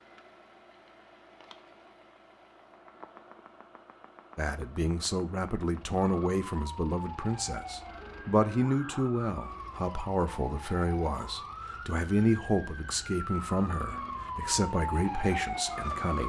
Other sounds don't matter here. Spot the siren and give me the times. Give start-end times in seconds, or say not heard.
6.0-16.2.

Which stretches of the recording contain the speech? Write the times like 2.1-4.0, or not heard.
4.3-16.2.